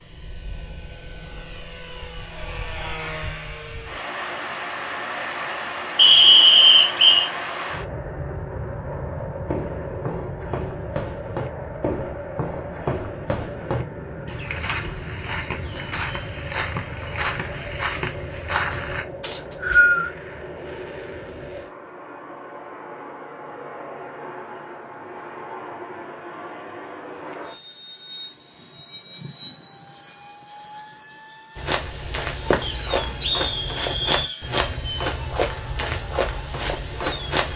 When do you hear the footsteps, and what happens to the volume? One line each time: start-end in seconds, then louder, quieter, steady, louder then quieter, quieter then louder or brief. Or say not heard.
9.2-19.1 louder
31.6-37.5 steady.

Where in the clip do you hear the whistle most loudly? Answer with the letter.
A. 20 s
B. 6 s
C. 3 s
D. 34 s
B.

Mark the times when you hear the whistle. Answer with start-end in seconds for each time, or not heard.
6.0-7.3, 19.2-20.1, 32.6-34.4.